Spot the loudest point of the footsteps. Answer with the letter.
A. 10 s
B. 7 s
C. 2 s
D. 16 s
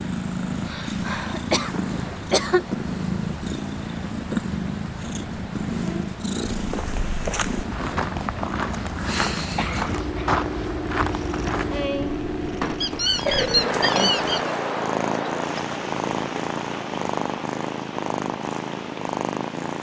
A.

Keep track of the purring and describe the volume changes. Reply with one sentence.
The loudness of the purring stays about the same.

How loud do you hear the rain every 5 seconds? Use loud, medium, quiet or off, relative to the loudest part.
medium, medium, loud, loud.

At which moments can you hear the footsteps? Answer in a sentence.
You can hear the footsteps from 6.5 to 11.8 s.